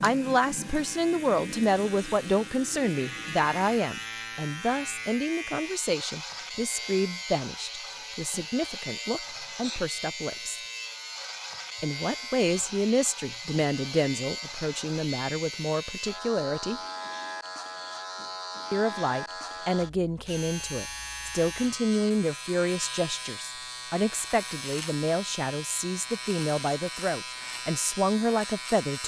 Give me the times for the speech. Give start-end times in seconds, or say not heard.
0.0-10.6, 11.8-16.8, 18.7-29.0.